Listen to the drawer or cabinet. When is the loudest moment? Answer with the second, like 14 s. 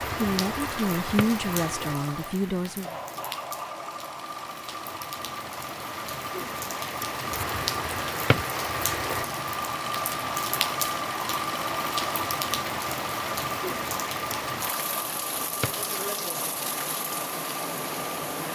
8 s.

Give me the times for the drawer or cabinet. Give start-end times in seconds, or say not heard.
0.9-1.4, 8.0-8.5, 15.4-15.8.